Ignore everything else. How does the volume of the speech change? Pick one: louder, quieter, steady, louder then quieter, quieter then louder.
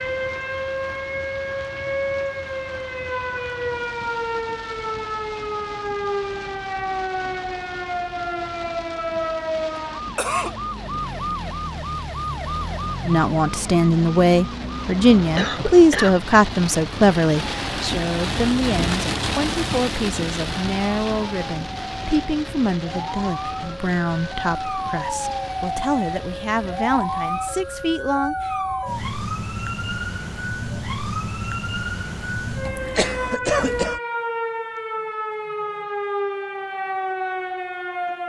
quieter.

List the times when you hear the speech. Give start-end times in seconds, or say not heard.
13.1-28.5.